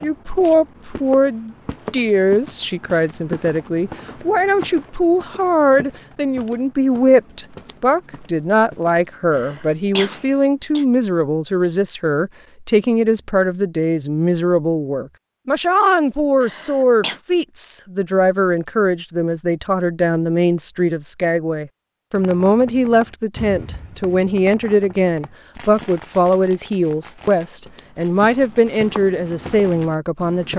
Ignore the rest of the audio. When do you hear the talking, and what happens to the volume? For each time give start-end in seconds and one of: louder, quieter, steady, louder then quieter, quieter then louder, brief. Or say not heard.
0.0-30.5 steady.